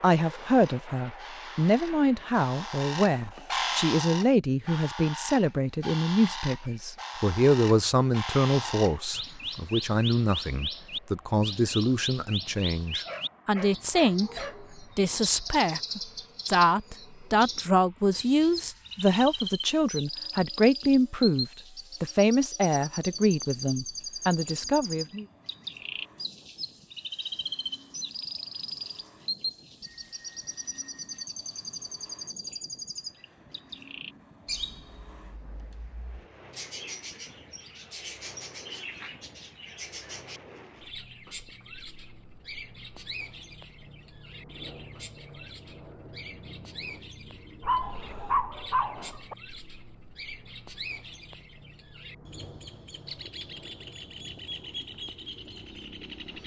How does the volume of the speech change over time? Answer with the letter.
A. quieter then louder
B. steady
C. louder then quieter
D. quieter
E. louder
B.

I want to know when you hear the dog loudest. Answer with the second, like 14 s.
48 s.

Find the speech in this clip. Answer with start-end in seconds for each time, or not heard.
0.0-25.2.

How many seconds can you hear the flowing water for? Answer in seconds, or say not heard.
not heard.